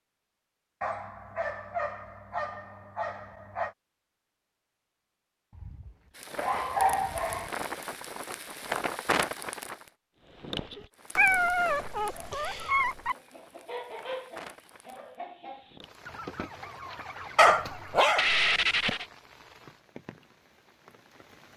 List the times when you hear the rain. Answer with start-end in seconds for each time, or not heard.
6.2-21.5.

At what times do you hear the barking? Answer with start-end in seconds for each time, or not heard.
0.8-3.8, 5.5-7.5, 11.2-13.2, 17.4-19.1.